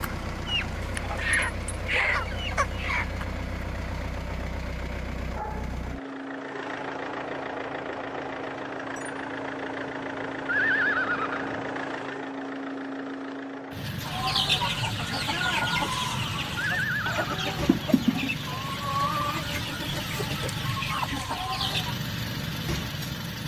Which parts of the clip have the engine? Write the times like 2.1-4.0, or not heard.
0.0-23.4.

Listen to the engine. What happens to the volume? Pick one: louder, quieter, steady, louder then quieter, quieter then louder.
steady.